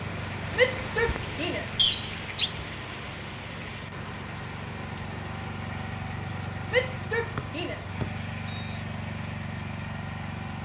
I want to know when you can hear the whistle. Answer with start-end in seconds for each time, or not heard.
1.8-2.5, 7.3-8.8.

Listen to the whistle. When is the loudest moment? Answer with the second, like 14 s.
2 s.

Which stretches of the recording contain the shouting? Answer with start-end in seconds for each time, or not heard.
0.5-1.9, 6.7-7.8.